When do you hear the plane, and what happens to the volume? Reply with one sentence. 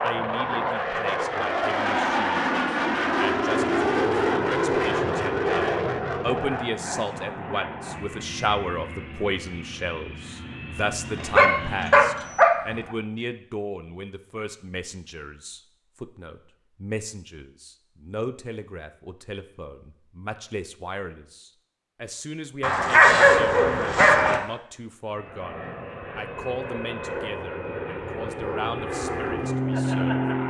You can hear the plane from 0.0 to 12.3 s, getting quieter; and from 25.1 to 30.4 s, getting louder.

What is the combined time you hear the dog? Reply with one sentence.
The dog can be heard for 3 seconds in total.